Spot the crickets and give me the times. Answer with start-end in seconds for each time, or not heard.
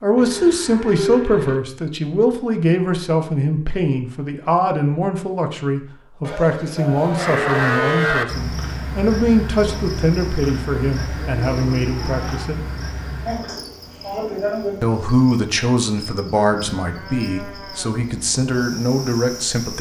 8.2-19.7.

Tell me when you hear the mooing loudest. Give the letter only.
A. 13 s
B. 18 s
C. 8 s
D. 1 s
C.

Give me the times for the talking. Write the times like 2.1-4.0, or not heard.
0.0-12.7, 14.8-19.7.